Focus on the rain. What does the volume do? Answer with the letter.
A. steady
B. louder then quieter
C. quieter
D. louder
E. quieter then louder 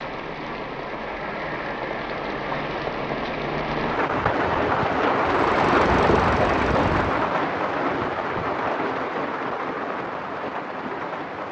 B.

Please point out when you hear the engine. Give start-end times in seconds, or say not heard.
5.2-7.3.